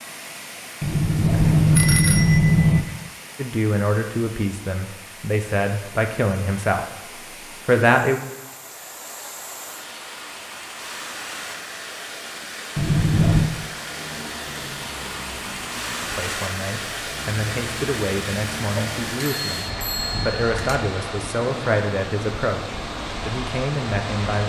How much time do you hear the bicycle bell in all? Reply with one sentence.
The bicycle bell can be heard for 5 seconds in total.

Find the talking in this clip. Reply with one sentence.
The talking can be heard from 3.4 to 6.8 s, from 7.7 to 8.2 s and from 16.0 to 24.4 s.